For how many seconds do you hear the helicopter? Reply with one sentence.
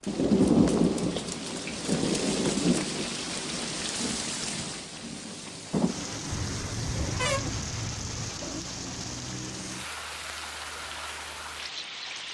You can't hear the helicopter here.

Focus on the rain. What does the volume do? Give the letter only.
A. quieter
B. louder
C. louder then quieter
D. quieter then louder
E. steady
A.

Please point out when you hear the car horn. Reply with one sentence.
The car horn can be heard from 6.3 to 8.3 s.